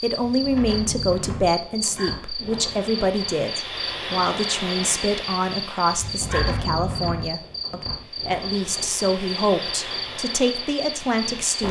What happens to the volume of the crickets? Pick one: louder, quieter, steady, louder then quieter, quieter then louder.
steady.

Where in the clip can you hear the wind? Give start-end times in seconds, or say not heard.
0.0-11.6.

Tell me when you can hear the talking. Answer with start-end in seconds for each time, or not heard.
0.0-11.6.